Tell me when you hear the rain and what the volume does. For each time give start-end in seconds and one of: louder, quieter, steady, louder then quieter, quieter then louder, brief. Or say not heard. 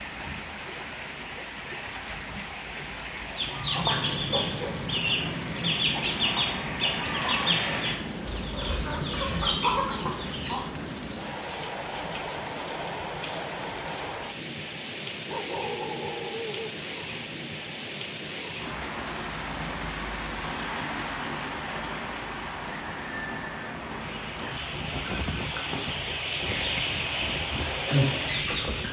0.0-28.8 steady.